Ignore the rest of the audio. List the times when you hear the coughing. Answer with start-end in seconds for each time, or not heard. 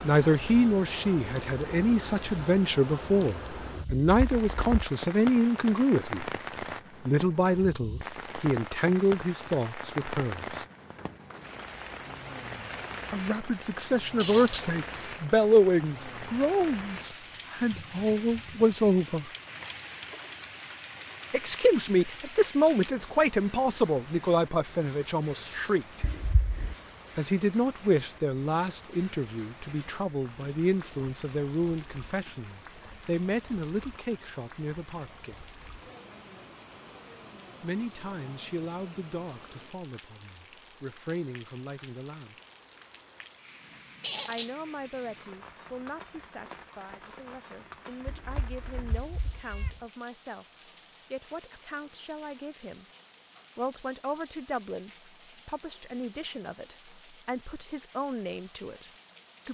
not heard.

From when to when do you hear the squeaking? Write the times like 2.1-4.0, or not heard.
14.2-14.7, 44.0-44.5.